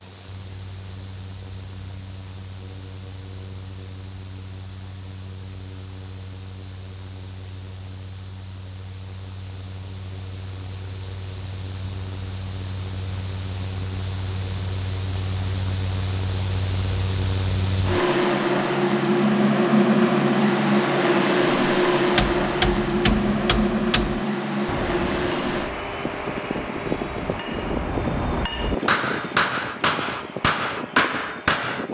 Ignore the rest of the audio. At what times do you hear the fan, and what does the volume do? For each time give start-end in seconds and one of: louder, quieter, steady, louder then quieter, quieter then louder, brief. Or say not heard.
0.0-31.9 louder then quieter.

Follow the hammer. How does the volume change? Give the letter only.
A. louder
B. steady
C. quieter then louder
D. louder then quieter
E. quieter
C.